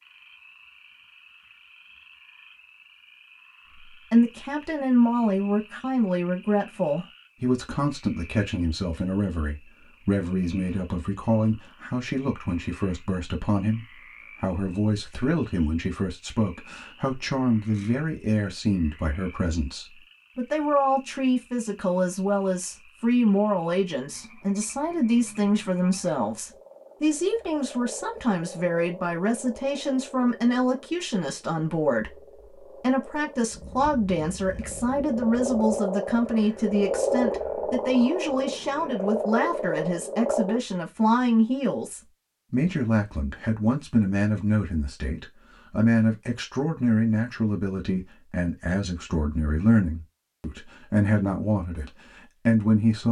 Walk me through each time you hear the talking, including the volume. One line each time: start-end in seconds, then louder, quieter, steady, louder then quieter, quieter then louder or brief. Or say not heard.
3.9-53.0 steady.